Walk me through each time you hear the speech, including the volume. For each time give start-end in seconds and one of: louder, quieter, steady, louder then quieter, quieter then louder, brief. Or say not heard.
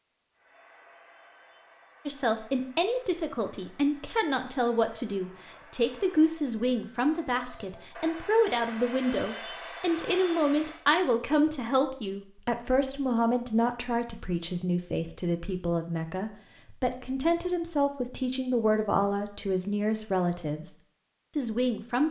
2.0-20.8 steady
21.4-22.0 brief.